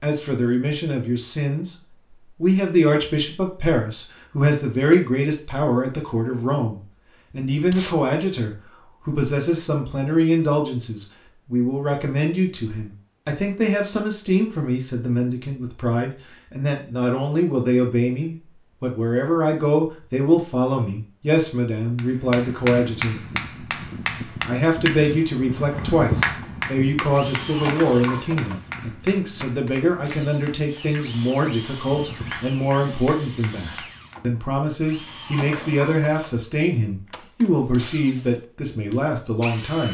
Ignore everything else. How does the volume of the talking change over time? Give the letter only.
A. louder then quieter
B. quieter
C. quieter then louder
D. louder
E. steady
E.